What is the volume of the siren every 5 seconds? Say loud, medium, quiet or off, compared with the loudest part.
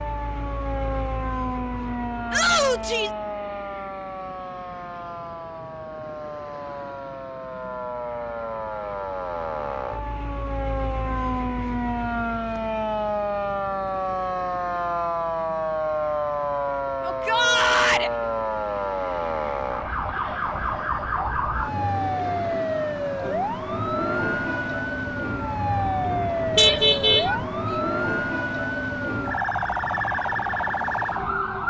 medium, medium, loud, loud, loud, loud, loud.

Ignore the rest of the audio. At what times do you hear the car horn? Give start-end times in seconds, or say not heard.
26.6-27.3.